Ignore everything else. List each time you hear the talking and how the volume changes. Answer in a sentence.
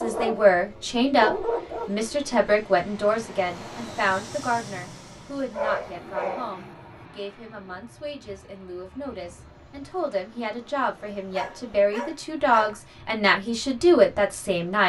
You can hear the talking from 0.0 to 14.8 s, getting quieter then louder.